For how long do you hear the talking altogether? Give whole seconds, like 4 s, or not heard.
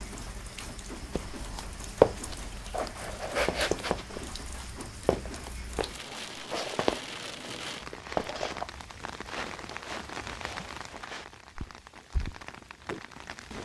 not heard.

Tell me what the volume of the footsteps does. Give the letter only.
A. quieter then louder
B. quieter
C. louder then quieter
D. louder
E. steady
B.